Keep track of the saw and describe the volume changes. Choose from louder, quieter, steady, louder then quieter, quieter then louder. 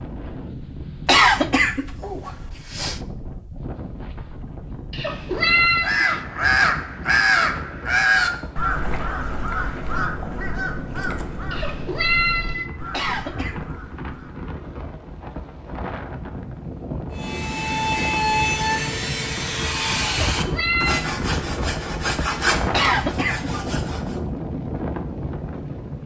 quieter.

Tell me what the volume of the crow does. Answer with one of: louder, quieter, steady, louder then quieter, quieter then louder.
quieter.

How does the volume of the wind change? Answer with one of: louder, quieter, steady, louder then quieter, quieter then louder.
louder.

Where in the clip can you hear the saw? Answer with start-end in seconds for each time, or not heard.
17.1-24.2.